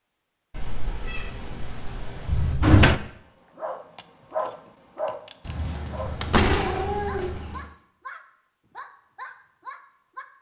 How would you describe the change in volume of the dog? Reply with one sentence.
The loudness of the dog goes up, then down.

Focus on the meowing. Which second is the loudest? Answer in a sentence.
The volume of the meowing peaks at 7 seconds.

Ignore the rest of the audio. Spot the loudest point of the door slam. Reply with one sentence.
The volume of the door slam peaks at 3 seconds.